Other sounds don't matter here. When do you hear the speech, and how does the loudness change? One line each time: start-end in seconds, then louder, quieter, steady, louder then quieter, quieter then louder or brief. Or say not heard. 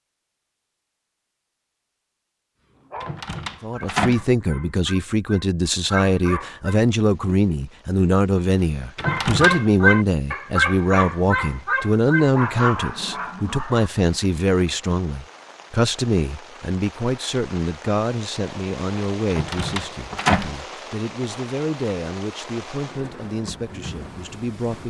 3.6-24.8 quieter.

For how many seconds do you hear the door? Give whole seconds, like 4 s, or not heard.
3 s.